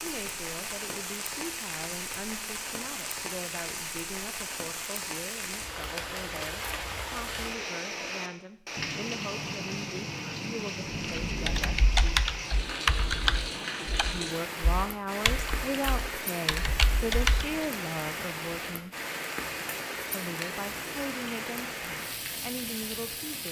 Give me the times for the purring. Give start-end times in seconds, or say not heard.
not heard.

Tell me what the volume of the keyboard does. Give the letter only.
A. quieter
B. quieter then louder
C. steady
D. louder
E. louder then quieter
B.